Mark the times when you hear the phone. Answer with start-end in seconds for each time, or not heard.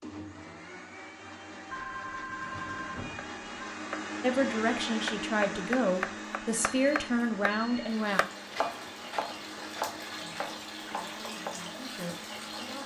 1.7-3.8, 6.5-8.1.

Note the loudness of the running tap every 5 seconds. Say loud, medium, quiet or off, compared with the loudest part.
off, loud, loud.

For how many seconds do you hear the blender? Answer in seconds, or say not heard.
13 s.